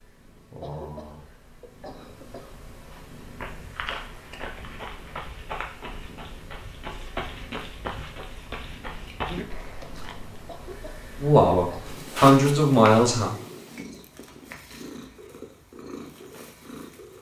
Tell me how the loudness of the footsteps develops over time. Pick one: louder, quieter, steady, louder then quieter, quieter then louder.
steady.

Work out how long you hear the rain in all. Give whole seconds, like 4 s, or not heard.
not heard.